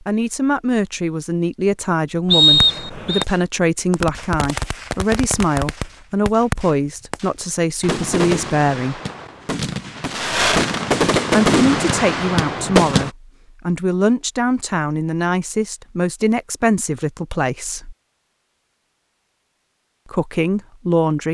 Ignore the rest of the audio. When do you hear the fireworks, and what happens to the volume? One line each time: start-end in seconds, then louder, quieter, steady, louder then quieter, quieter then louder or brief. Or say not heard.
2.4-13.1 louder.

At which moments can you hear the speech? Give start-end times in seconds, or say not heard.
0.0-9.0, 11.3-17.9, 20.1-21.3.